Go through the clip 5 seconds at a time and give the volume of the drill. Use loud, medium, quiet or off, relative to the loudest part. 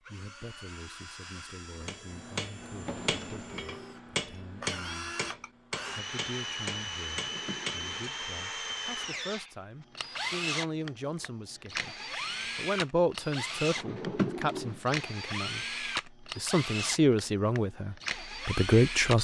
medium, loud, loud, loud.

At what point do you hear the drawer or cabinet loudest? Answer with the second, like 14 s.
14 s.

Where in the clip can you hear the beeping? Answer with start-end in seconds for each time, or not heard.
not heard.